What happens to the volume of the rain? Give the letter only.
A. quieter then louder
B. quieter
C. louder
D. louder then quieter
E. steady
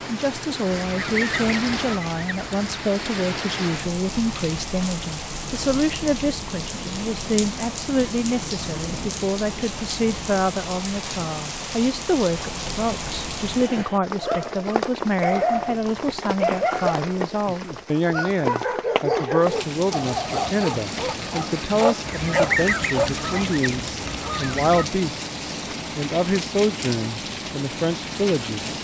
E.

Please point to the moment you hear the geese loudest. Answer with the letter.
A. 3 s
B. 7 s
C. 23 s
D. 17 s
C.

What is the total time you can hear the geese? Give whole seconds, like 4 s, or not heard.
5 s.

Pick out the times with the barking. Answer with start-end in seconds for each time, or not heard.
14.2-23.4.